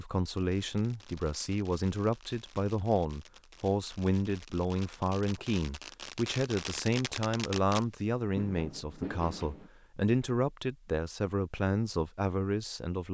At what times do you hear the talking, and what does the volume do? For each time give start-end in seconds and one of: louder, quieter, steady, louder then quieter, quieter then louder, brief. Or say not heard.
0.0-13.1 steady.